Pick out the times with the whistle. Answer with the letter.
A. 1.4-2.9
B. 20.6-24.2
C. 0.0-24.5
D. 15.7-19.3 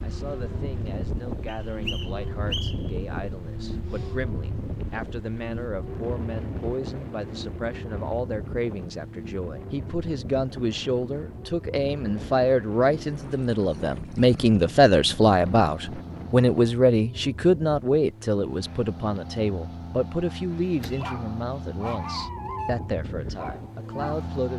A.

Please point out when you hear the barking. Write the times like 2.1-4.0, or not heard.
20.6-24.2.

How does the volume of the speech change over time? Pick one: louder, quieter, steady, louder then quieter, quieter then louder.
louder then quieter.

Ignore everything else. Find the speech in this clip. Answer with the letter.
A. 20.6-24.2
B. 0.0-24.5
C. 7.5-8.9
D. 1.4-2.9
B.